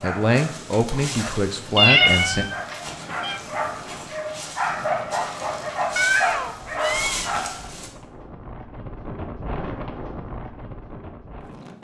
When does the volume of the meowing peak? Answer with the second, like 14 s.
2 s.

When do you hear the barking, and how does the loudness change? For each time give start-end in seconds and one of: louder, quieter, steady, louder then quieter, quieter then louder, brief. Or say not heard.
0.0-7.9 louder.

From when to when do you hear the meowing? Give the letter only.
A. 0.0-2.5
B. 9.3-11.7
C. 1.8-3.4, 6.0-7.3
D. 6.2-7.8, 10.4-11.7
C.